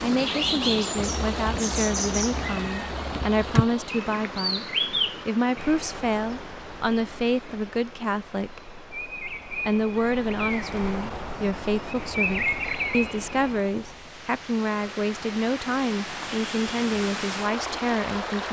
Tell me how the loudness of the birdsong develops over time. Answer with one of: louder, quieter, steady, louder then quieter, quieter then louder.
quieter then louder.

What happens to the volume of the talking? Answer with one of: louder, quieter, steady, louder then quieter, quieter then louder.
steady.